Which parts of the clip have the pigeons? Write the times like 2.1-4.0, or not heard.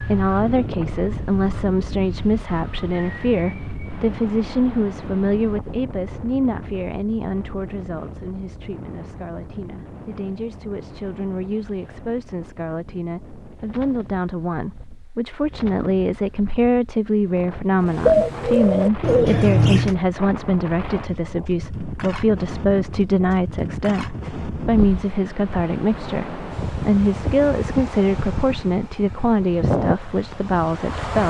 17.9-19.9.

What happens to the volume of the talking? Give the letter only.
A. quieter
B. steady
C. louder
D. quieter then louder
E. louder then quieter
D.